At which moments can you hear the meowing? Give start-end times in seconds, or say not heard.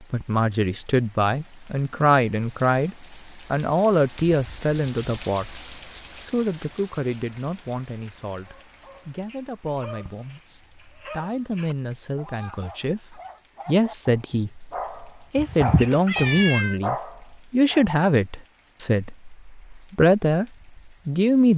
15.3-16.8.